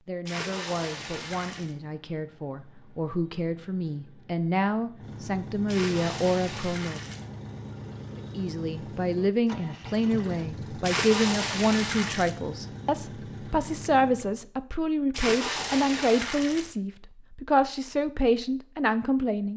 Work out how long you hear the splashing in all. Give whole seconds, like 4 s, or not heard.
6 s.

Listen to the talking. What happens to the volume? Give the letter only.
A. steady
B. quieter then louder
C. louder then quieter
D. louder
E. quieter
D.